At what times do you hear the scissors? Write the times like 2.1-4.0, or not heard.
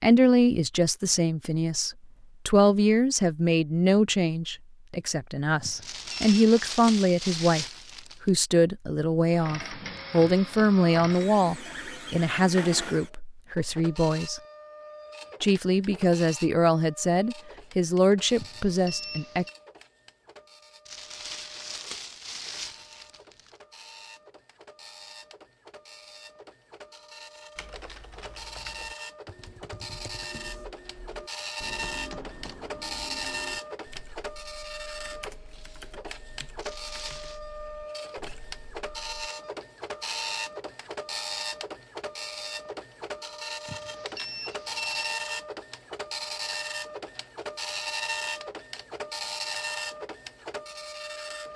not heard.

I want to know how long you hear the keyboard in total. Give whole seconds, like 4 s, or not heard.
12 s.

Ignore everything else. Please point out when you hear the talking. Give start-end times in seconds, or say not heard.
0.0-14.4, 15.4-19.4.